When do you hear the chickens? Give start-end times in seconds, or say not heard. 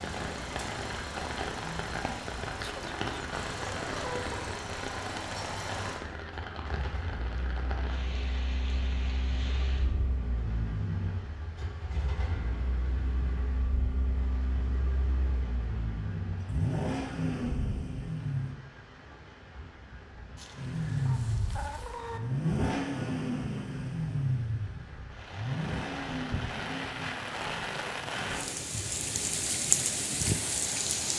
2.5-4.6, 20.4-22.2.